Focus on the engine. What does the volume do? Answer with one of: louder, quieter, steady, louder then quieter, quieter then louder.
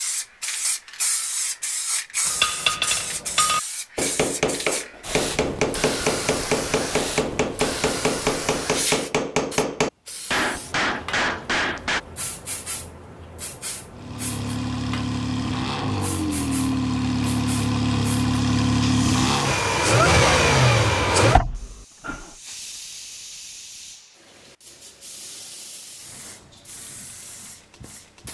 louder.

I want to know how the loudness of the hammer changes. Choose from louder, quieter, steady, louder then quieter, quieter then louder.
steady.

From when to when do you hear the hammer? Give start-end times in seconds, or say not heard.
2.2-12.0.